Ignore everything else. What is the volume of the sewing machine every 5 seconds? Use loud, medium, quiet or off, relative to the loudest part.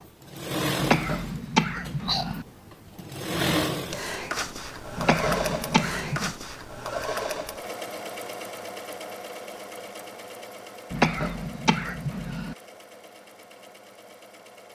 loud, loud, quiet.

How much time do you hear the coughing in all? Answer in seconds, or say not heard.
5 s.